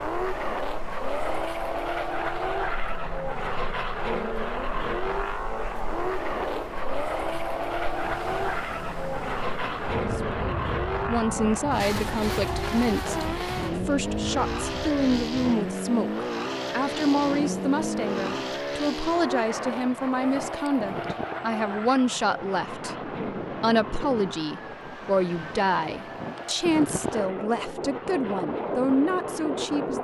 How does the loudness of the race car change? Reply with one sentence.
The volume of the race car goes down.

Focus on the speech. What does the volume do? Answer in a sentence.
The volume of the speech stays about the same.